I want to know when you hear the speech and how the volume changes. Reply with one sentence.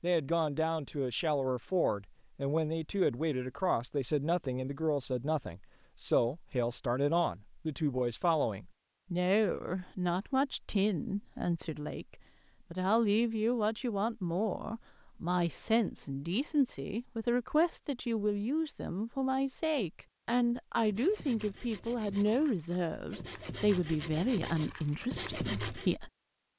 You can hear the speech from 0.0 to 26.1 s, at a steady volume.